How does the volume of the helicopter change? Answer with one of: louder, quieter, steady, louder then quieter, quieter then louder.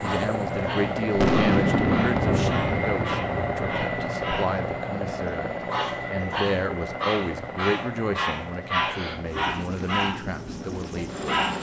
quieter.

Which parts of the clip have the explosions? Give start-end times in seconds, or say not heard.
1.1-3.7.